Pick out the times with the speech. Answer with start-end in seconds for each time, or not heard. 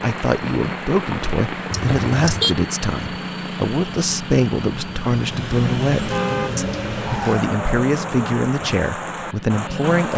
0.0-10.1.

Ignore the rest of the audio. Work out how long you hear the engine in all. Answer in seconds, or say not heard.
10 s.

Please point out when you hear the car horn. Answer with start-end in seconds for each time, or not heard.
1.7-2.5, 5.9-6.5.